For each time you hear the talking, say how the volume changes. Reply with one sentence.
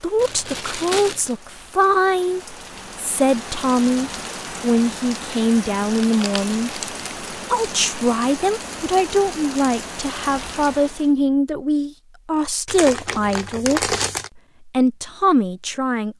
The talking can be heard from 0.0 to 16.1 s, at a steady volume.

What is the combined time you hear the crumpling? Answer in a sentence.
The crumpling can be heard for 4 seconds in total.